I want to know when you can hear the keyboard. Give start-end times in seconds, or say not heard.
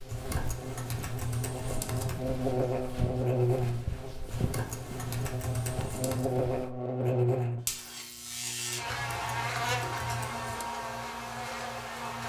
0.1-2.2, 4.3-6.3, 8.8-10.7.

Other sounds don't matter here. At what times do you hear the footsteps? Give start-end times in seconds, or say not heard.
0.0-6.8.